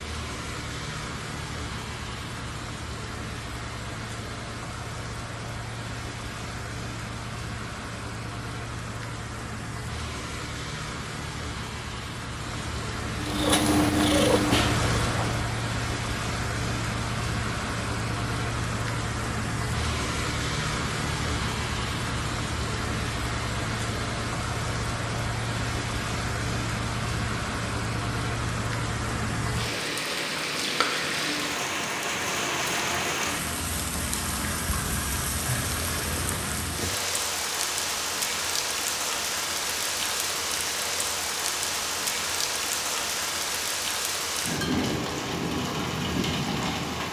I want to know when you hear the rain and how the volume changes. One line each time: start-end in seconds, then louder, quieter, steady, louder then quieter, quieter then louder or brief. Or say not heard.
0.0-47.0 louder.